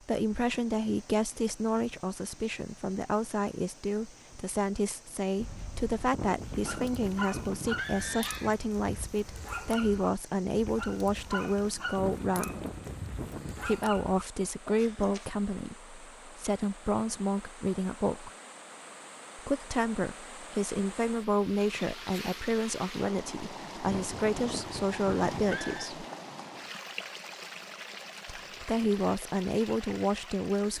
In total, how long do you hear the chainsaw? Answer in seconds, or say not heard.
not heard.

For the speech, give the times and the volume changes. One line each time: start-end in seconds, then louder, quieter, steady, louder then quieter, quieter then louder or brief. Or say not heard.
0.1-12.7 steady
13.7-18.3 quieter then louder
19.4-26.1 steady
28.2-30.7 brief.